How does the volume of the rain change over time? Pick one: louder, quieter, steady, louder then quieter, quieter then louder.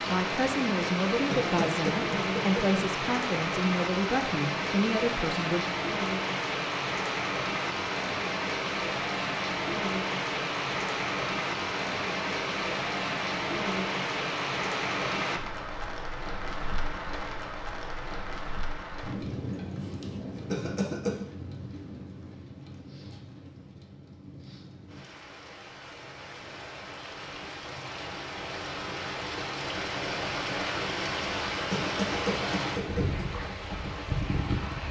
quieter then louder.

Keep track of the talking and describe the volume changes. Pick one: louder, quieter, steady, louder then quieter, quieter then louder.
steady.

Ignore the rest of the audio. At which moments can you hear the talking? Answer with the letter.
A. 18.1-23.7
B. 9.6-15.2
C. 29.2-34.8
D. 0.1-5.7
D.